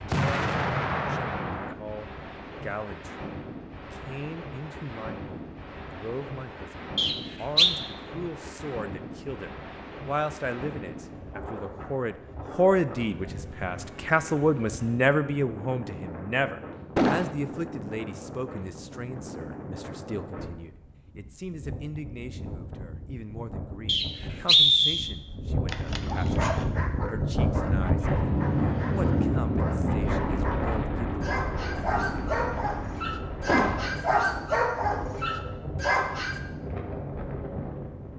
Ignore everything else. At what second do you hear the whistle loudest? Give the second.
25 s.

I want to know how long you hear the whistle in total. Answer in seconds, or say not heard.
2 s.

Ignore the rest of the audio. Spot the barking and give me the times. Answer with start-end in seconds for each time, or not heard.
25.6-36.4.